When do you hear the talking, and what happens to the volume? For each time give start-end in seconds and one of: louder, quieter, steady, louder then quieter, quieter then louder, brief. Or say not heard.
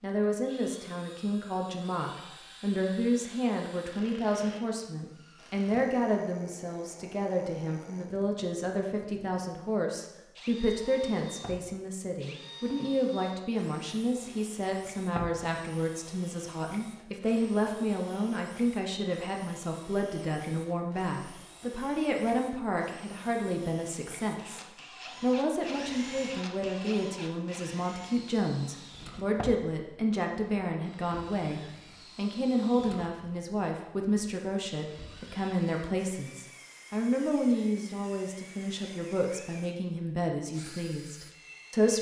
0.0-41.9 steady.